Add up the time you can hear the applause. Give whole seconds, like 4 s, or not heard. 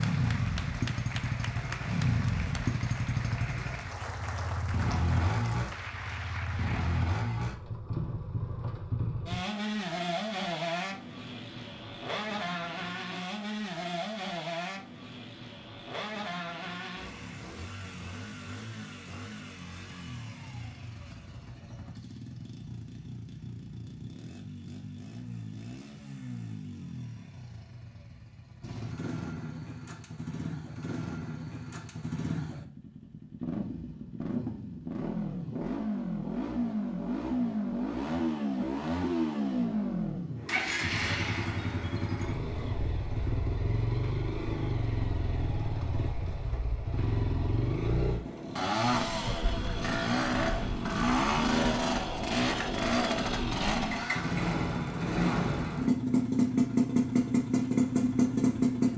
7 s.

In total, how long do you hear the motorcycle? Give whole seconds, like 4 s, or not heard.
59 s.